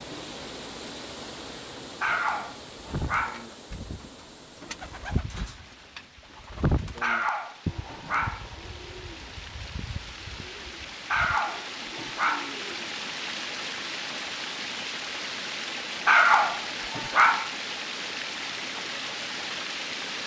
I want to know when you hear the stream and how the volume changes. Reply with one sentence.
The stream can be heard from 0.0 to 20.2 s, getting quieter then louder.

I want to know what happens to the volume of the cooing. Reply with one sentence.
The volume of the cooing goes up, then down.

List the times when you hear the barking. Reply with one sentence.
The barking can be heard from 2.0 to 3.5 s, from 7.0 to 8.4 s, from 11.1 to 12.6 s and from 16.1 to 17.5 s.